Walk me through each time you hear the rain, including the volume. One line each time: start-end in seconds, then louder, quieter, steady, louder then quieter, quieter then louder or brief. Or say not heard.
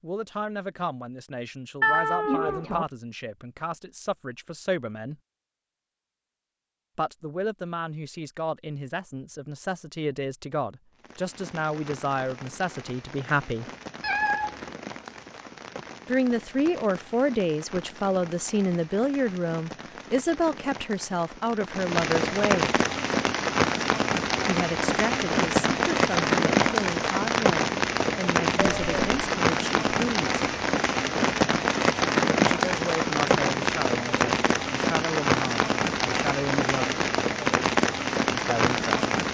10.9-39.2 louder.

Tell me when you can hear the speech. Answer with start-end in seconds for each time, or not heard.
0.0-5.2, 7.0-13.7, 16.1-22.8, 24.4-30.4, 32.5-37.0, 38.4-39.0.